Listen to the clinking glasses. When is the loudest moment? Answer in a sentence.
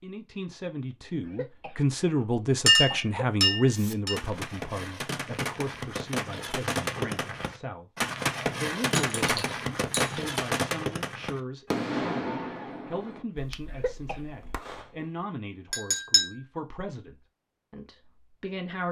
The volume of the clinking glasses peaks at 3 seconds.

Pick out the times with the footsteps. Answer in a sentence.
You can't hear the footsteps here.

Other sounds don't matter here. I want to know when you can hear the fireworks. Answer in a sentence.
The fireworks can be heard from 3.7 to 14.9 s.